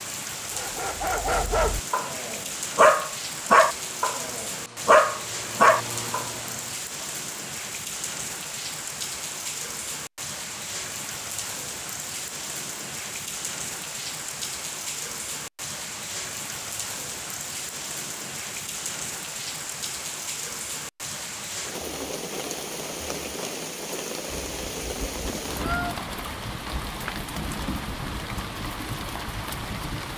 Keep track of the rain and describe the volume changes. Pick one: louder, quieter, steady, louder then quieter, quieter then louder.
steady.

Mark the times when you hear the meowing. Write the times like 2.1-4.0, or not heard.
24.3-25.9.